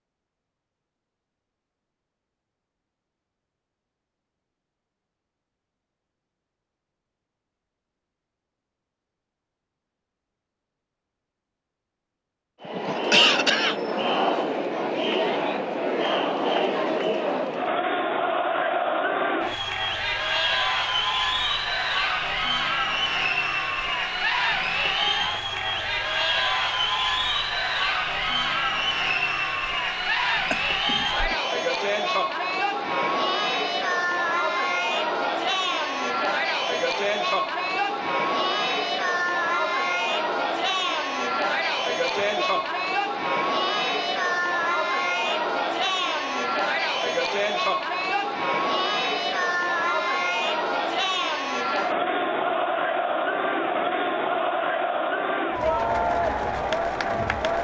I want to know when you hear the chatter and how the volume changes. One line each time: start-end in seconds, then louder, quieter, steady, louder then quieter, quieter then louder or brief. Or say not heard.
12.6-57.5 steady.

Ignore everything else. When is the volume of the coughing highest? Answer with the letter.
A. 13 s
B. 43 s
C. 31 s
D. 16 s
A.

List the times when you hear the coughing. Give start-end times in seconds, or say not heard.
12.8-13.8, 30.5-31.4, 42.1-42.7.